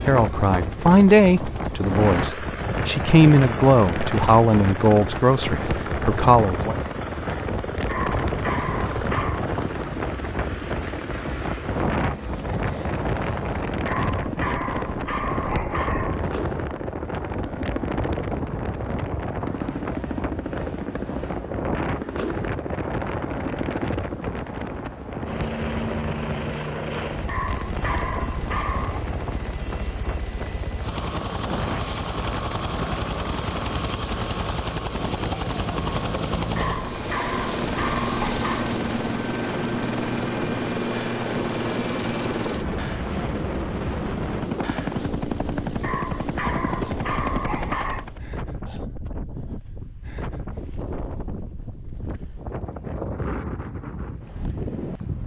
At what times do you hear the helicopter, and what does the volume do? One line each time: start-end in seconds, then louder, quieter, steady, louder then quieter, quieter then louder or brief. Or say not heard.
0.0-48.3 louder.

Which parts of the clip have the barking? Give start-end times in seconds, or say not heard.
7.8-9.4, 13.8-16.2, 27.2-29.1, 36.5-38.8, 45.8-48.0.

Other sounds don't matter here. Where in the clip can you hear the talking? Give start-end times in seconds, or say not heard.
0.1-6.8.